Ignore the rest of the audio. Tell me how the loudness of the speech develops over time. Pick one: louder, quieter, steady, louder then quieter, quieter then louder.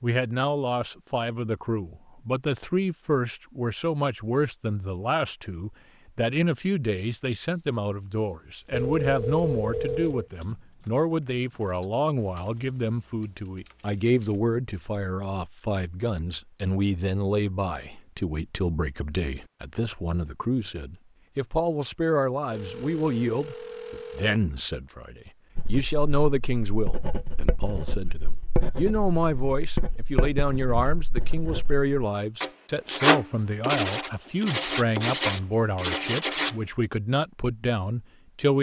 steady.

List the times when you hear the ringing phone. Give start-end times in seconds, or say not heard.
8.7-10.2, 22.5-24.4.